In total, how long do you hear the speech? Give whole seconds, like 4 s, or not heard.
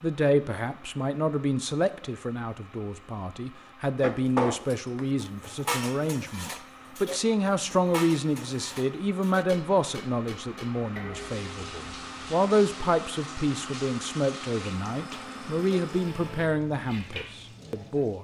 18 s.